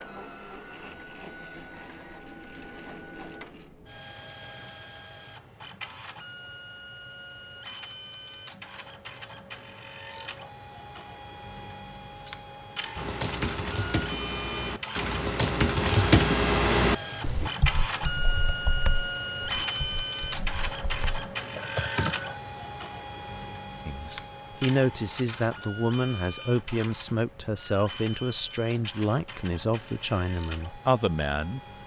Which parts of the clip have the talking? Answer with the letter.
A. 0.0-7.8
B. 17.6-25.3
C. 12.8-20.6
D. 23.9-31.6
D.